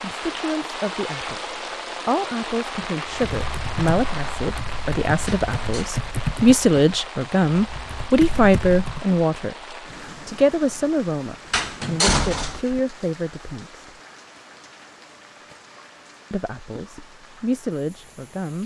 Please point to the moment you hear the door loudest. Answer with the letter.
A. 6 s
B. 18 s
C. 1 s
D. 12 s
D.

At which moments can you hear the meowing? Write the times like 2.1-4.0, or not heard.
not heard.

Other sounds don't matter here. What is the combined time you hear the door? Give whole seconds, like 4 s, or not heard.
2 s.